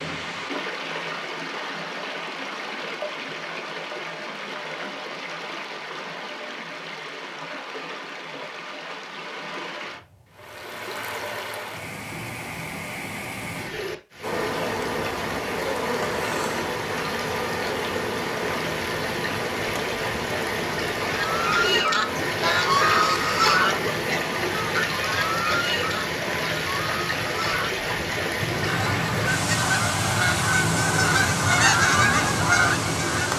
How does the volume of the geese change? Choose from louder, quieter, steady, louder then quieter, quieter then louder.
quieter then louder.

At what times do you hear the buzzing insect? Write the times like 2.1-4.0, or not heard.
14.2-24.8.